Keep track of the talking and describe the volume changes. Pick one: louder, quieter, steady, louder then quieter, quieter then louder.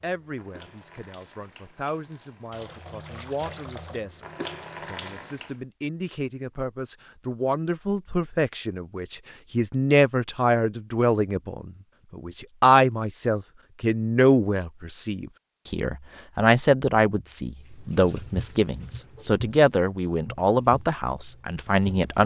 louder.